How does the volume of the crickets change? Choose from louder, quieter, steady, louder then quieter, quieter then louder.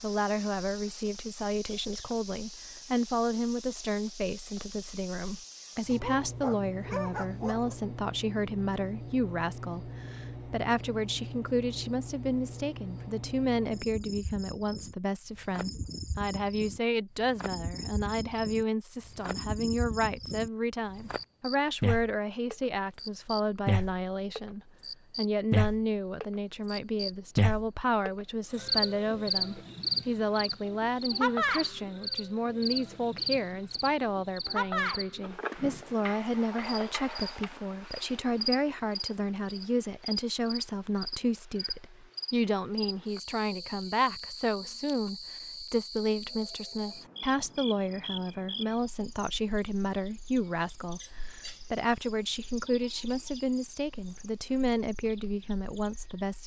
louder then quieter.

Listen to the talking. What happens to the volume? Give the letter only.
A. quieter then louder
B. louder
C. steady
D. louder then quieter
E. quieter
C.